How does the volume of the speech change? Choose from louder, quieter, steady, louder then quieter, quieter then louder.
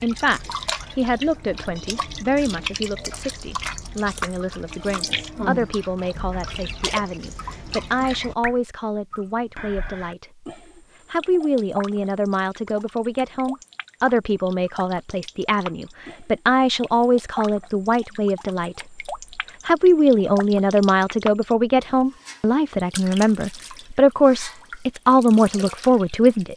louder.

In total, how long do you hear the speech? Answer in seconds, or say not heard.
25 s.